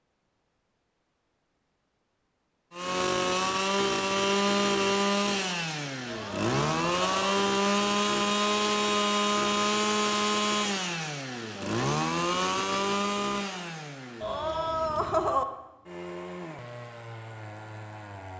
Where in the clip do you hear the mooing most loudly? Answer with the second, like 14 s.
15 s.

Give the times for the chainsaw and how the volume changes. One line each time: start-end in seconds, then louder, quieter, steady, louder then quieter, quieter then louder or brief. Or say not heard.
2.7-18.3 quieter.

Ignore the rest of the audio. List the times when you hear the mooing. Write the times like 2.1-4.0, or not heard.
6.0-7.3, 14.2-15.4.